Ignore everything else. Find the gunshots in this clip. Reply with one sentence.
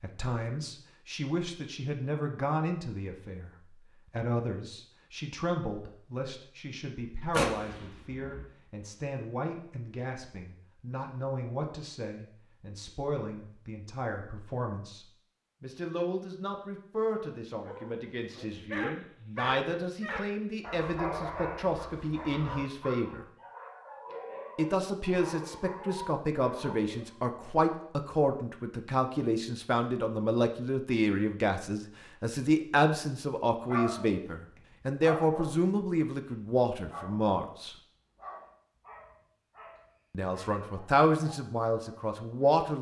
The gunshots can be heard from 7.3 to 8.4 s.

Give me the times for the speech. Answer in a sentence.
The speech can be heard from 0.0 to 23.2 s, from 24.6 to 37.8 s and from 40.1 to 42.7 s.